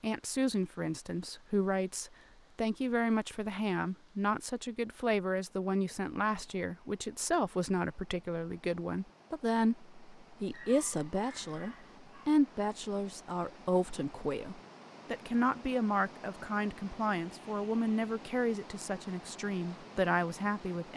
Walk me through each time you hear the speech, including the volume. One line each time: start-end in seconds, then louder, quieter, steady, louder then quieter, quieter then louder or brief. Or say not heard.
0.0-20.9 steady.